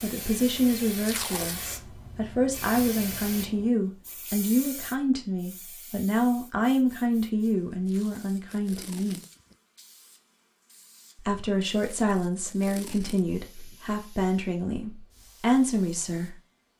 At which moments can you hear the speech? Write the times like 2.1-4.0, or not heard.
0.0-9.2, 11.2-16.4.